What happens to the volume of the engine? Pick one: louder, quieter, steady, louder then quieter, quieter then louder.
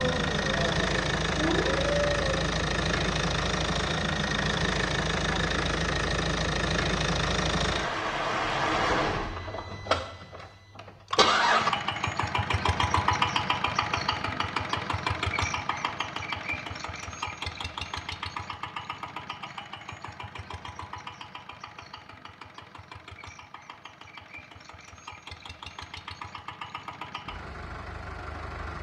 quieter.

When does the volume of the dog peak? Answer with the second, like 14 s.
2 s.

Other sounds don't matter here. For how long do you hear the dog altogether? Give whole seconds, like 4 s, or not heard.
2 s.